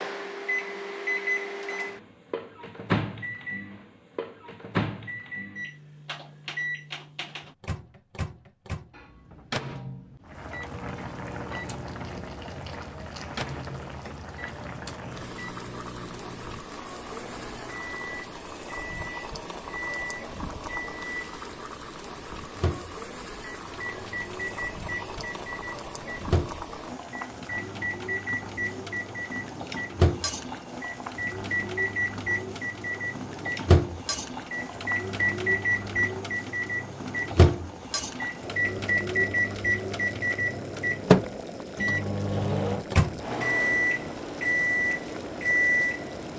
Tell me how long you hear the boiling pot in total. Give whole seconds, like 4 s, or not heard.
36 s.